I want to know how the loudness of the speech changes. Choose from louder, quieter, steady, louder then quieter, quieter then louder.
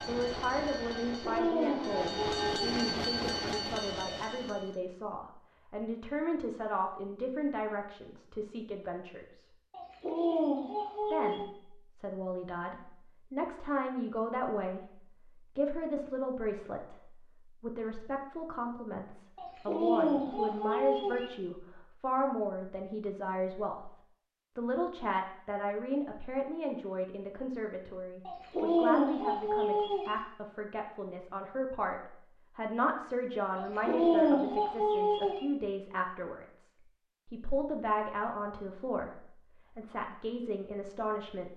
steady.